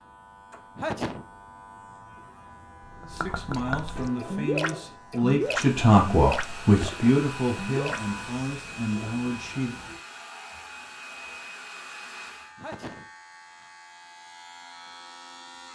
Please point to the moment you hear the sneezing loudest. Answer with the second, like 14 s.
1 s.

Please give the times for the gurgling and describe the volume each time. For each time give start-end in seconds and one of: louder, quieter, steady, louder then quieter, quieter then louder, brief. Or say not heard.
3.0-8.1 louder then quieter.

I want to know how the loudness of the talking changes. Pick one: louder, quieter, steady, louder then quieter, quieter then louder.
louder then quieter.